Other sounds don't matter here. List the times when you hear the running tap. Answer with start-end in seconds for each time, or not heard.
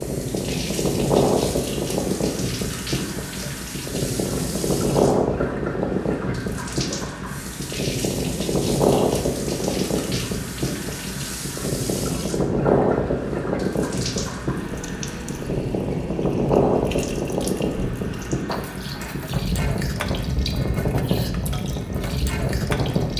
0.0-23.1.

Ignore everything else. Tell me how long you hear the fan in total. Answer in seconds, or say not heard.
23 s.